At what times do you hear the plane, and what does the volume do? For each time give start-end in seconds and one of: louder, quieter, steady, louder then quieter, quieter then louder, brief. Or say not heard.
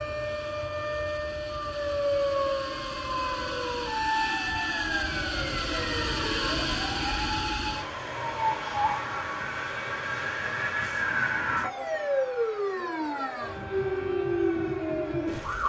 0.0-15.6 louder then quieter.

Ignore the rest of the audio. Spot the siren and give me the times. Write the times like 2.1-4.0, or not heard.
0.0-15.6.